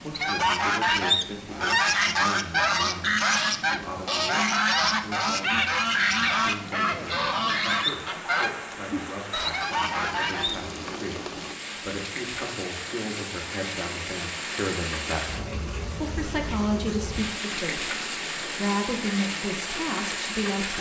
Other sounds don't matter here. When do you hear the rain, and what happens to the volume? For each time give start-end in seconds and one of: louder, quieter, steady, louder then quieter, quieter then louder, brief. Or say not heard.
0.0-20.7 louder.